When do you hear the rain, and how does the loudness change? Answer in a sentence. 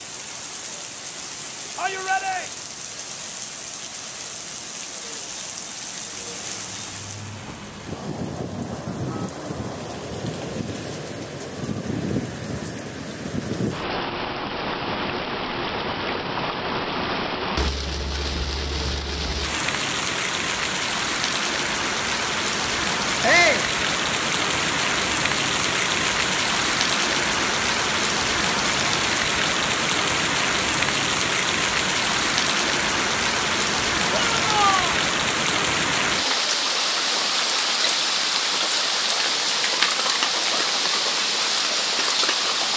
The rain can be heard from 0.0 to 42.7 s, getting louder.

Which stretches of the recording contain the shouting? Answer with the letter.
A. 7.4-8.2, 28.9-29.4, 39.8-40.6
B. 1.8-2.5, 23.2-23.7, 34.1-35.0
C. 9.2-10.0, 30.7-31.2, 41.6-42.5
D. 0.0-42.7
B.